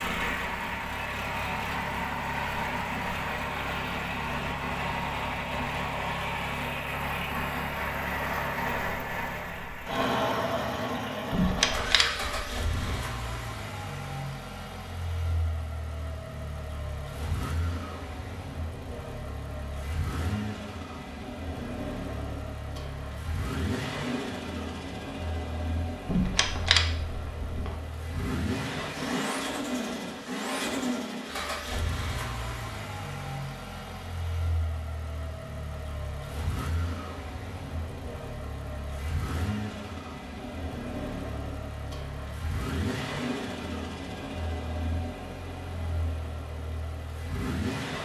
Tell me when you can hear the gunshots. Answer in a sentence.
You can hear the gunshots from 11.3 to 13.0 s and from 26.1 to 27.8 s.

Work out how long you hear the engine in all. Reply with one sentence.
You can hear the engine for 48 seconds altogether.